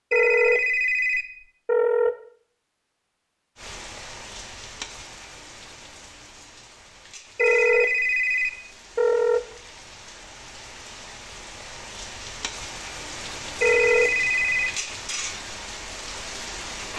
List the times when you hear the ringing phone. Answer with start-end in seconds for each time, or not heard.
0.1-2.1, 7.3-9.4, 13.6-14.8.